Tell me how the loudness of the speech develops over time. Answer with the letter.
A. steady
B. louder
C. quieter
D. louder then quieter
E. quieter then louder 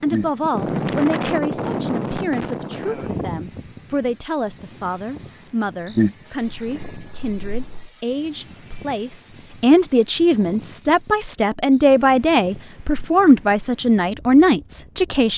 B.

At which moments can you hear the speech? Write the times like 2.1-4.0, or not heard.
0.0-15.3.